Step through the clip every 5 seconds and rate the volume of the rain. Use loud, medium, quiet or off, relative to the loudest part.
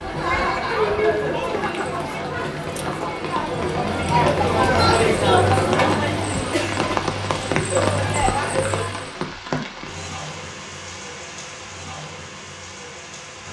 medium, loud, medium.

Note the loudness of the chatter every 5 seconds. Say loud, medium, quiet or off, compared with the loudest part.
loud, loud, off.